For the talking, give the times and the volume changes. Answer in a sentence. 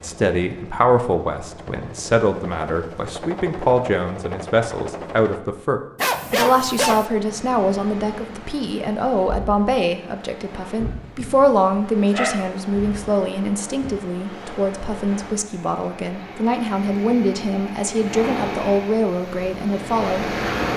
The talking can be heard from 0.0 to 20.2 s, at a steady volume.